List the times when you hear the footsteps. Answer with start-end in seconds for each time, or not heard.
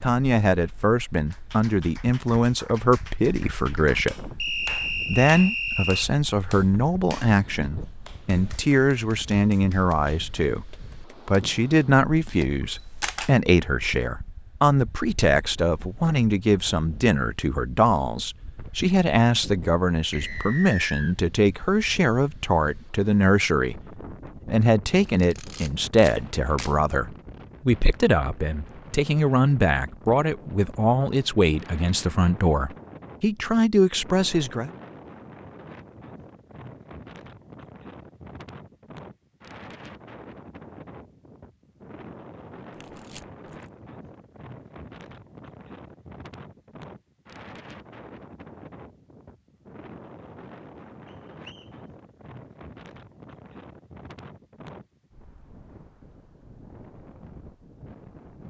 not heard.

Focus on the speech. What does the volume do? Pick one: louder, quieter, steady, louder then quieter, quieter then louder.
steady.